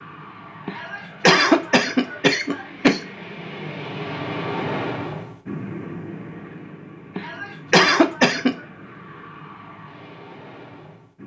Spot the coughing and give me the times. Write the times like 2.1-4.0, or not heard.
0.7-3.0, 7.2-8.6.